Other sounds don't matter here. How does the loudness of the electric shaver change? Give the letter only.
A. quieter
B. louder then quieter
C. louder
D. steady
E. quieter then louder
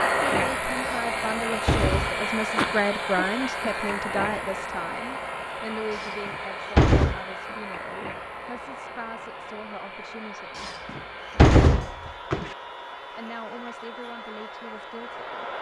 A.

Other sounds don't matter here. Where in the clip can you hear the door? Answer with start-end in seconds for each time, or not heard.
0.9-2.8, 6.0-7.2, 10.6-12.5.